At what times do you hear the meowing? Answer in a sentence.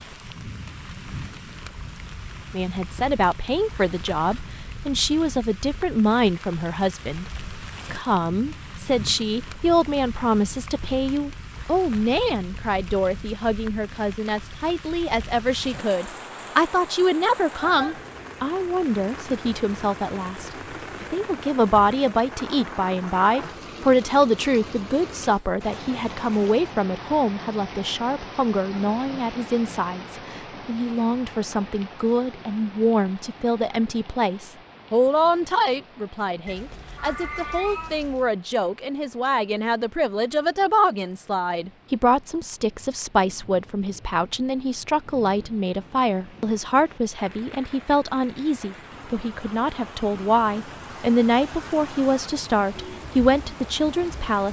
The meowing can be heard from 36.5 to 38.3 s.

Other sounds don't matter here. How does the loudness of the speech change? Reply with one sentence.
The loudness of the speech stays about the same.